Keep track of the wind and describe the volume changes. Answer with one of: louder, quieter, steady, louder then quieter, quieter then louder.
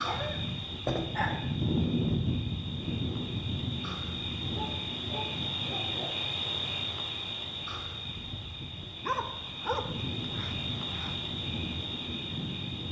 quieter then louder.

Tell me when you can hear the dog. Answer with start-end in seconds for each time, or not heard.
0.0-1.4, 4.5-6.2, 9.0-11.2.